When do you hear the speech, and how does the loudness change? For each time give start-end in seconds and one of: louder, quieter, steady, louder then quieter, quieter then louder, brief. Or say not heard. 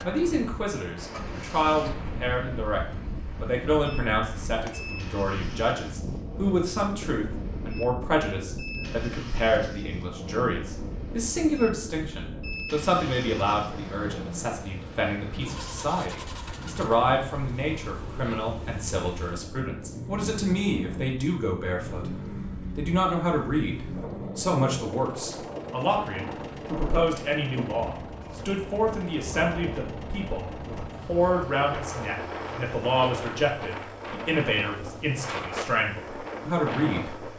0.0-2.8 brief
3.4-37.3 steady.